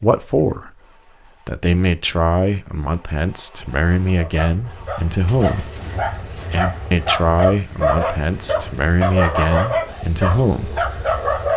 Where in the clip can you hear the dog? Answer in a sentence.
The dog can be heard from 4.1 to 11.5 s.